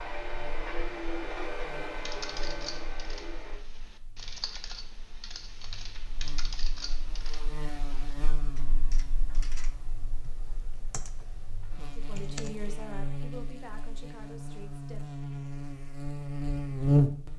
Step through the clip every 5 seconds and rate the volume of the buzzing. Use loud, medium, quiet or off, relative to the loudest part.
quiet, quiet, quiet, loud.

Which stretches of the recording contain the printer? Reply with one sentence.
The printer can be heard from 0.0 to 3.6 s.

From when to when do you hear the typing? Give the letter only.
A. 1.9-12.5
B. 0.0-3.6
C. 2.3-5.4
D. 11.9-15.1
A.